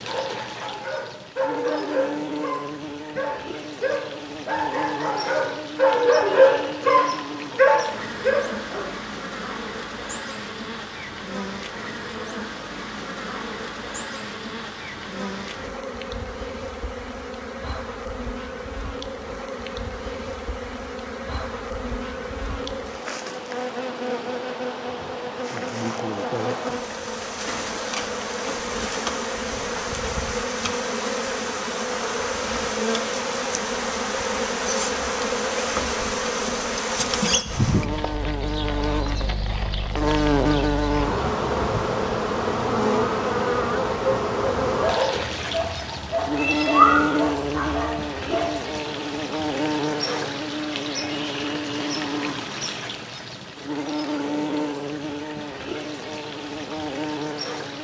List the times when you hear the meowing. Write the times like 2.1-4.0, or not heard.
46.1-47.1.